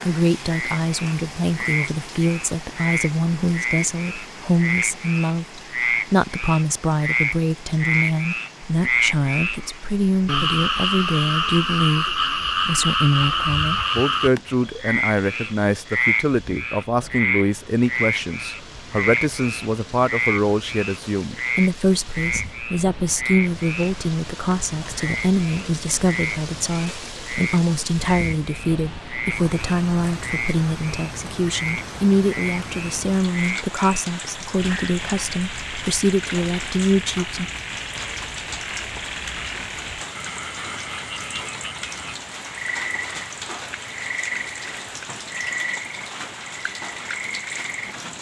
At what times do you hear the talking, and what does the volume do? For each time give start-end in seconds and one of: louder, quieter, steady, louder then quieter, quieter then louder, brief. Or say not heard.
0.1-37.5 steady.